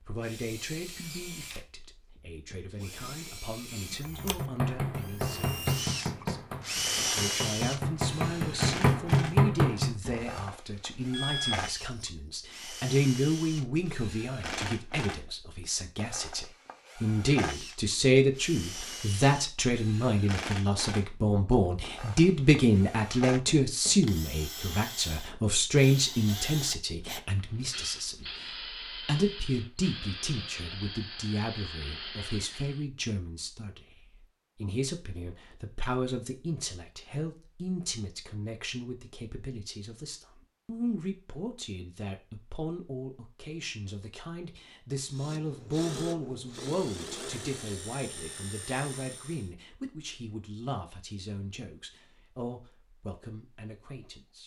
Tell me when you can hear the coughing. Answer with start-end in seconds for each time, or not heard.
not heard.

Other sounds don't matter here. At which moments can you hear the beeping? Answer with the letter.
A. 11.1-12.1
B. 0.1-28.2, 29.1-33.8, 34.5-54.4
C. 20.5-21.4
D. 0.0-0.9
A.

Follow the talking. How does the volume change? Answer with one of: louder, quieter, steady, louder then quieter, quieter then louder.
louder then quieter.